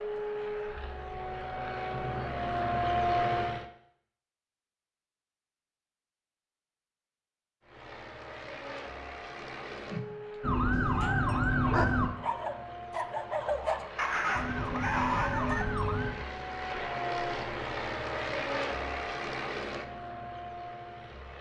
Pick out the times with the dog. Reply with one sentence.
The dog can be heard from 9.9 to 15.7 s.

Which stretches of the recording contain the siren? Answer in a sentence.
You can hear the siren from 10.4 to 12.1 s and from 14.3 to 16.1 s.